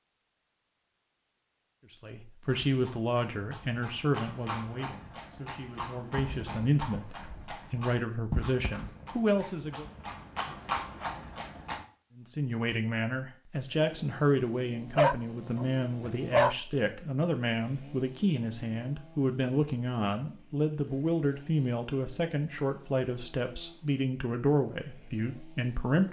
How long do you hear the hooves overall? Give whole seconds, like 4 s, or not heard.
9 s.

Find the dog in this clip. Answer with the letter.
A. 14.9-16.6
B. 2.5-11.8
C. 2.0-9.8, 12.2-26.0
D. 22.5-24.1
A.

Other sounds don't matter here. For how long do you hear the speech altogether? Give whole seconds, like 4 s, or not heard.
22 s.